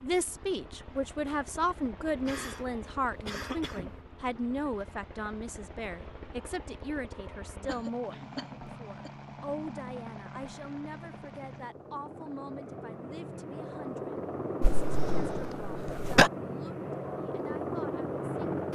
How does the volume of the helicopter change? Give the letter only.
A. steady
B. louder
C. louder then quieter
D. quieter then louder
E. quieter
B.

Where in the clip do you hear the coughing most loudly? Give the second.
16 s.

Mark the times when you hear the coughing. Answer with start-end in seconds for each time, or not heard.
2.1-4.0, 7.2-9.1, 14.6-16.3.